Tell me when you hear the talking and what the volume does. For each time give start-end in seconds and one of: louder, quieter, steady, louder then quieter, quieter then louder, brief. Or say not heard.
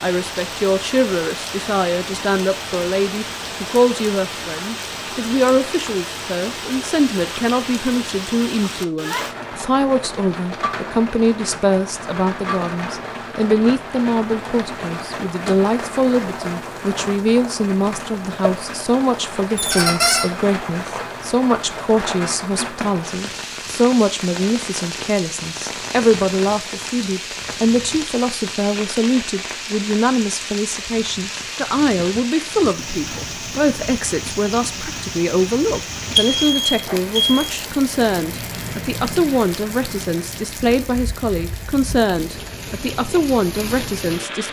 0.0-44.4 steady.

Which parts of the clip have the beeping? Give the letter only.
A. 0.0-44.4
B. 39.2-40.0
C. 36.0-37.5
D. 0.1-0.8
C.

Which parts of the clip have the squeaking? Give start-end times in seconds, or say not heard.
19.6-20.2.